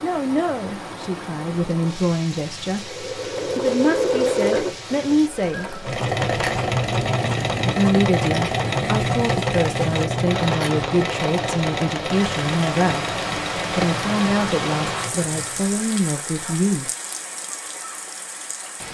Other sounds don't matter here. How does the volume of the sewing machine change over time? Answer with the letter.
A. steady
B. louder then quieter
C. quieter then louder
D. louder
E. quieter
E.